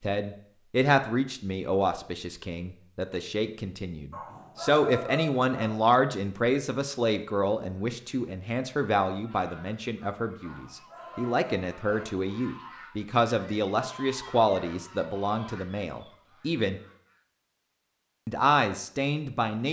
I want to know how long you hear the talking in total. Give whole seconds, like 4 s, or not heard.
18 s.